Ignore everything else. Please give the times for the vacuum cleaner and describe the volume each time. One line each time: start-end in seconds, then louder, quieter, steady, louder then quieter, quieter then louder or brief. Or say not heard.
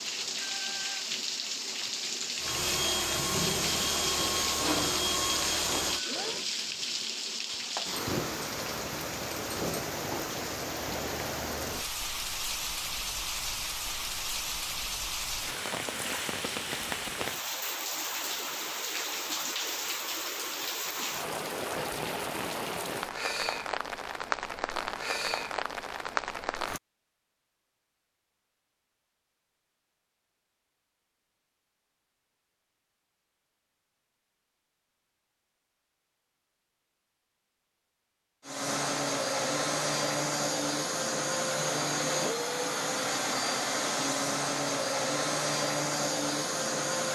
2.4-6.5 steady
38.5-47.1 steady.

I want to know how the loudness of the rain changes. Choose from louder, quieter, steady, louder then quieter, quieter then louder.
steady.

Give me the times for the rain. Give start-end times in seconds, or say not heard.
0.0-26.8.